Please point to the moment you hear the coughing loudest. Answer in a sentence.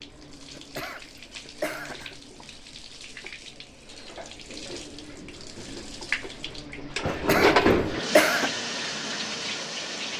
The loudest moment of the coughing is at 8 seconds.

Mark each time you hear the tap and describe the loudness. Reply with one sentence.
The tap can be heard from 0.0 to 10.1 s, getting louder then quieter.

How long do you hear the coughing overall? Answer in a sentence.
You can hear the coughing for 3 seconds altogether.